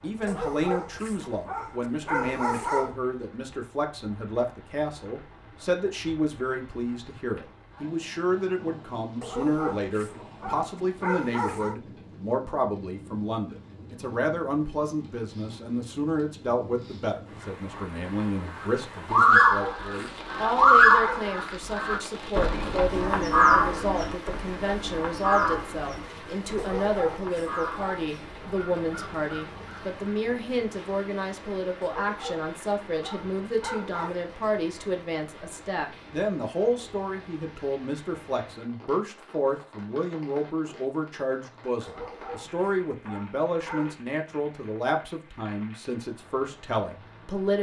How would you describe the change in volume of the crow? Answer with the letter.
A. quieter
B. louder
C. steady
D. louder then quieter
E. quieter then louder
A.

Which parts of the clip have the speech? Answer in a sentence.
You can hear the speech from 0.0 to 47.5 s.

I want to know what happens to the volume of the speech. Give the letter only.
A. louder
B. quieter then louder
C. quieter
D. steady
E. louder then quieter
D.